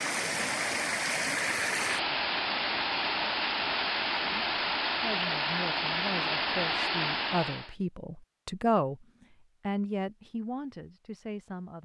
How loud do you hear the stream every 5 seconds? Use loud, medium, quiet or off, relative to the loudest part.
loud, loud, off.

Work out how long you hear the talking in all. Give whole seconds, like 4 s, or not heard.
7 s.